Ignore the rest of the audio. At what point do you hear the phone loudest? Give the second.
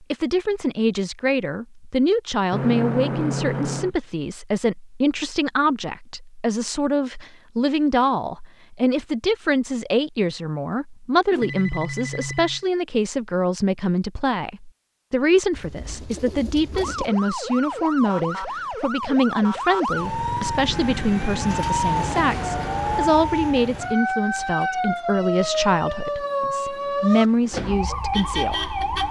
3 s.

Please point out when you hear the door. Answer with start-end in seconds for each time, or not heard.
not heard.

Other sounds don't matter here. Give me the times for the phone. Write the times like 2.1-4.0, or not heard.
2.5-4.0, 11.3-12.7, 24.4-26.1.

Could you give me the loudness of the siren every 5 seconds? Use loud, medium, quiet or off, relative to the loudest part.
off, off, off, loud, loud, loud.